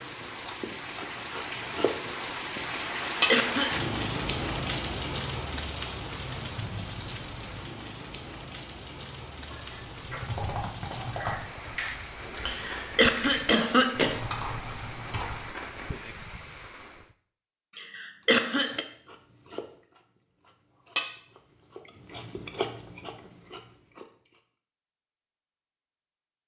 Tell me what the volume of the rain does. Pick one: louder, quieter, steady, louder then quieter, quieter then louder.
quieter.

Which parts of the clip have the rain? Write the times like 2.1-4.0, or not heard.
0.0-17.1.